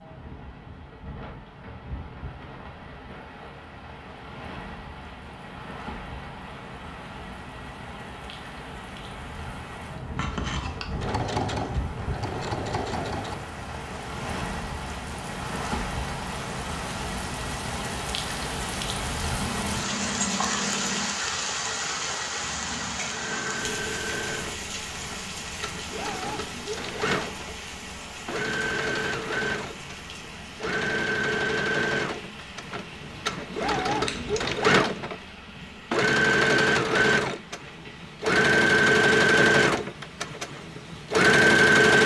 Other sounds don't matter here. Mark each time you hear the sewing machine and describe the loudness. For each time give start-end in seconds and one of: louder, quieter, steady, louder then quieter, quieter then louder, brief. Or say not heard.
10.9-13.4 brief
23.1-42.0 louder.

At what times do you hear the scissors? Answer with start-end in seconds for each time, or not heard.
10.2-10.8, 19.4-21.2, 33.9-34.4.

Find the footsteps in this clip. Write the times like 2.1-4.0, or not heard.
not heard.